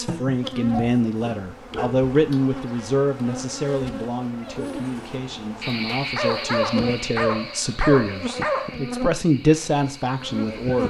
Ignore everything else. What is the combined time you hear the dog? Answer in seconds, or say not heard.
5 s.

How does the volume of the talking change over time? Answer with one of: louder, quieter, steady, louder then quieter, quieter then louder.
quieter then louder.